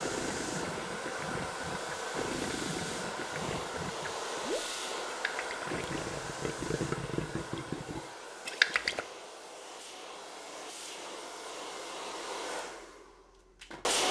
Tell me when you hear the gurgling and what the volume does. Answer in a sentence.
The gurgling can be heard from 0.0 to 9.1 s, getting louder.